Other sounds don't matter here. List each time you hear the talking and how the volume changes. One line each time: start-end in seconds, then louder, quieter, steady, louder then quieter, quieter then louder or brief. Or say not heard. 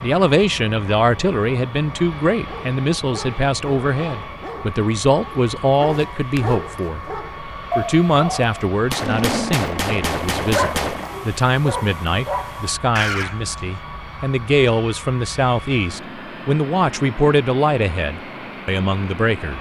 0.0-19.5 steady.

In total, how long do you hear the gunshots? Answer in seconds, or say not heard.
2 s.